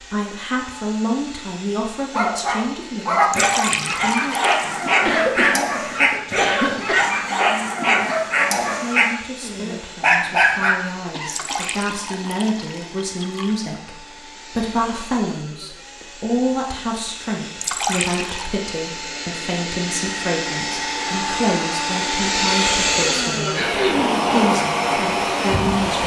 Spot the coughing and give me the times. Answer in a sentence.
The coughing can be heard from 5.0 to 7.0 s, from 11.1 to 13.0 s and from 23.6 to 24.2 s.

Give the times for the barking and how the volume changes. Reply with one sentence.
The barking can be heard from 2.1 to 10.8 s, at a steady volume.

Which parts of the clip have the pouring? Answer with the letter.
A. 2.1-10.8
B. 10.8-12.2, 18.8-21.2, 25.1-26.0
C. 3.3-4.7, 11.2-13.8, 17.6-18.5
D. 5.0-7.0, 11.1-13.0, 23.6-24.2
C.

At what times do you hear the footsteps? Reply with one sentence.
The footsteps can't be heard in this clip.